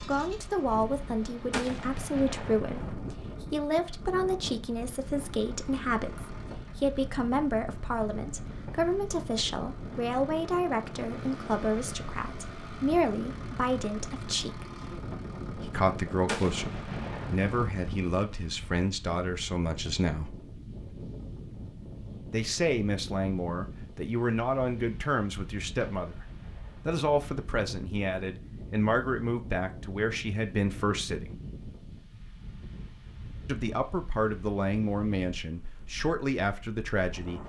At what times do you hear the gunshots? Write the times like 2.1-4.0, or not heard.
1.5-3.0, 16.2-17.7, 25.8-27.0.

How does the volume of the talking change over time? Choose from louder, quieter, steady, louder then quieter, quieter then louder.
steady.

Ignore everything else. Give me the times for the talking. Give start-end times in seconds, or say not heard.
0.0-14.7, 15.6-20.3, 22.3-26.2, 26.9-31.4, 33.5-37.4.